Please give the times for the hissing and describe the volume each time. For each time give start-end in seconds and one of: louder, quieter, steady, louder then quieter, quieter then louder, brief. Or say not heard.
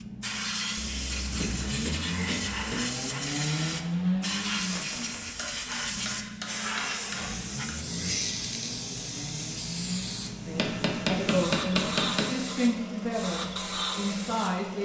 0.0-14.7 steady.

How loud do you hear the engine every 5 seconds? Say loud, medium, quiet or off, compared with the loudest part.
loud, medium, medium.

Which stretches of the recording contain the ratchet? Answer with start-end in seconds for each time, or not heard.
not heard.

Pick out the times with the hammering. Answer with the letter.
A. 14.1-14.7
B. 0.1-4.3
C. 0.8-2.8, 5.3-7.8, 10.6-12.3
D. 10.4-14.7
C.